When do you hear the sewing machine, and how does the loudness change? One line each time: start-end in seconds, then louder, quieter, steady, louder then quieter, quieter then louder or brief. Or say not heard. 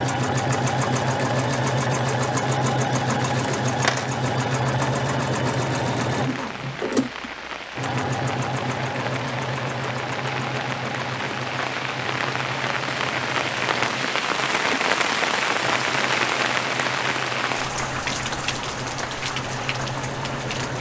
0.0-20.7 quieter.